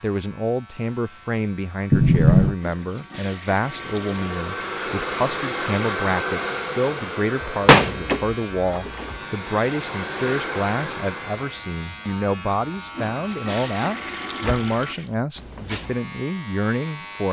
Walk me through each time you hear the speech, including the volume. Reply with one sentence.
The speech can be heard from 0.0 to 17.2 s, at a steady volume.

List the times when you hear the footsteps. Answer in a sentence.
The footsteps can't be heard in this clip.